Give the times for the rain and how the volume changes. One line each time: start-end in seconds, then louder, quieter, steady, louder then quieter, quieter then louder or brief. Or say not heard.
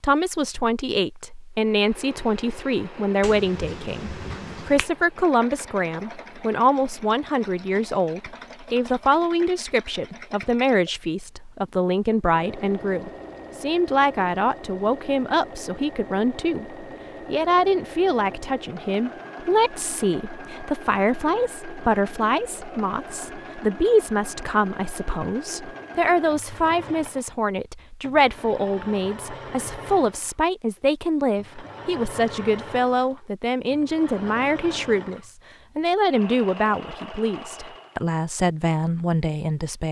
not heard.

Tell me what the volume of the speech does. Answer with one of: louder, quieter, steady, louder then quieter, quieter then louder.
steady.